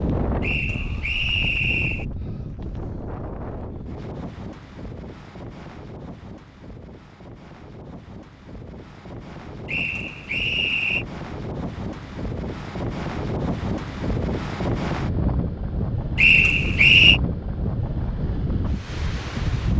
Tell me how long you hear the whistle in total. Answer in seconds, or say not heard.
4 s.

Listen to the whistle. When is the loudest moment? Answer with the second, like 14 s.
17 s.